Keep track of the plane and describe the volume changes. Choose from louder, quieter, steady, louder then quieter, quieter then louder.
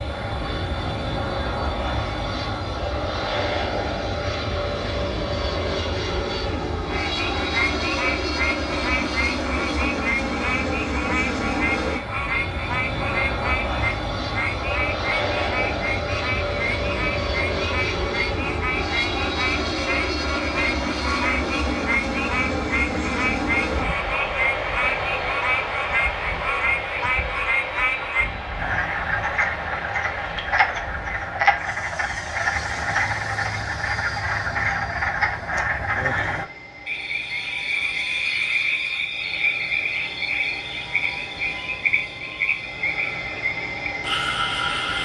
quieter.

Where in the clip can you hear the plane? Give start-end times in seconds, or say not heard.
0.0-45.0.